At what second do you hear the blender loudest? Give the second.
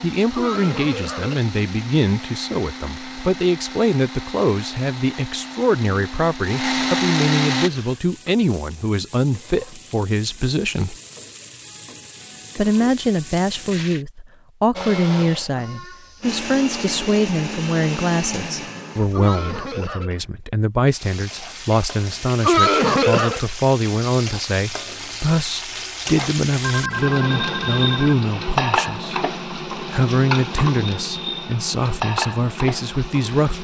7 s.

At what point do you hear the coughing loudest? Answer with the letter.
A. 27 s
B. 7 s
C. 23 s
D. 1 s
C.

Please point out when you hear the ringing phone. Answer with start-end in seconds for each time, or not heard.
26.6-28.1.